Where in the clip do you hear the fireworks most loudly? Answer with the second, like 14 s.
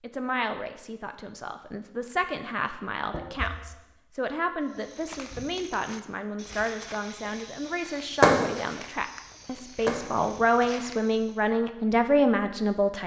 8 s.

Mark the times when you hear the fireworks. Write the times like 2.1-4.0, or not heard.
8.0-8.6, 9.7-10.7.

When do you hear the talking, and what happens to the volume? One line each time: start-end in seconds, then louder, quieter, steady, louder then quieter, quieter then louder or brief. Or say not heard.
0.0-13.0 louder.